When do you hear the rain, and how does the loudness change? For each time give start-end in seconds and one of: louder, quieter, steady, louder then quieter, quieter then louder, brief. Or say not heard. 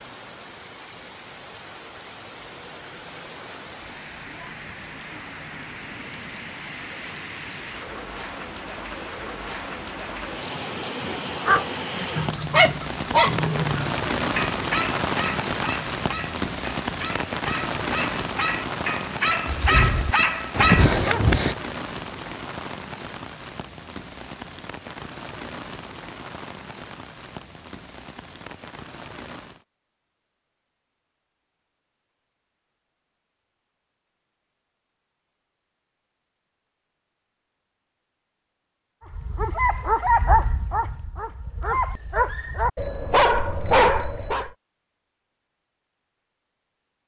0.0-29.6 louder then quieter.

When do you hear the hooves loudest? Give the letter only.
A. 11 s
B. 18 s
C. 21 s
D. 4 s
C.